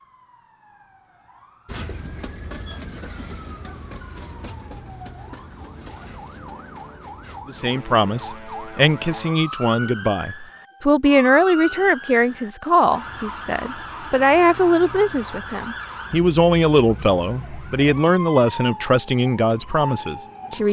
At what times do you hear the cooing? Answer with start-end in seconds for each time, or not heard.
not heard.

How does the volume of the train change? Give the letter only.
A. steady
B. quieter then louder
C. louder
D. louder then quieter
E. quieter
E.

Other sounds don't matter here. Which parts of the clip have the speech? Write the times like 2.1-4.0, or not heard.
7.5-20.6.